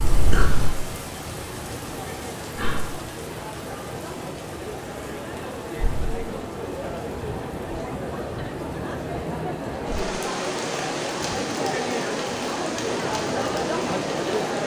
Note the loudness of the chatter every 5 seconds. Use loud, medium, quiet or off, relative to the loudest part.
medium, medium, loud.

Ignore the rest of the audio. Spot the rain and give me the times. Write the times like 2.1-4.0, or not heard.
0.0-14.6.